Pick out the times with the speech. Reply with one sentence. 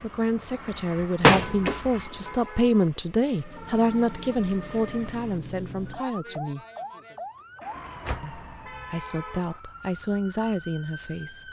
The speech can be heard from 0.0 to 6.7 s and from 8.2 to 11.4 s.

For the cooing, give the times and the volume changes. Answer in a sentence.
The cooing can't be heard in this clip.